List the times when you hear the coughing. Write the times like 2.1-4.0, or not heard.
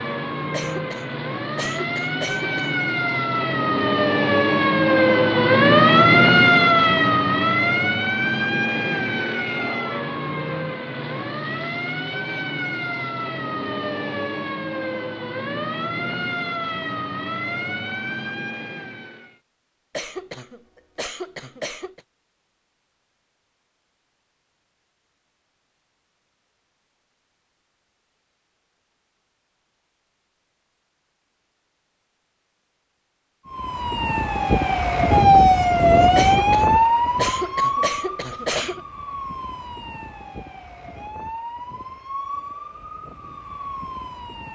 0.5-2.8, 19.9-22.0, 36.1-38.8.